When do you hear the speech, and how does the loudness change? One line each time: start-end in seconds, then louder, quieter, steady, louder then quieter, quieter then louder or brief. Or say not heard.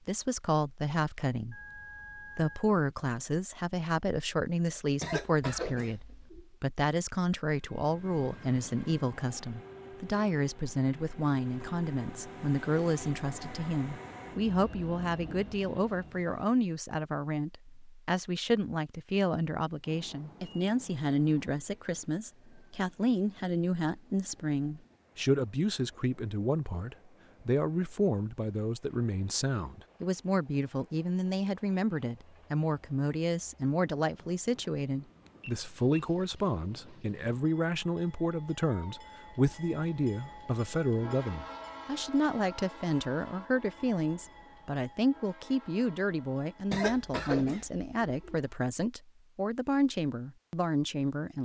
0.1-51.4 steady.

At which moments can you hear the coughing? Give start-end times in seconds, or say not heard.
5.0-6.5, 46.7-48.4.